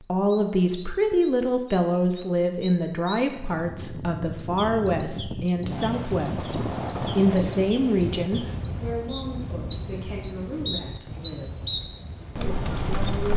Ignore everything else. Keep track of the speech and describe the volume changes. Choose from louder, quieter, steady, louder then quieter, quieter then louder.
quieter.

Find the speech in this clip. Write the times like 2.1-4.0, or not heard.
0.1-13.3.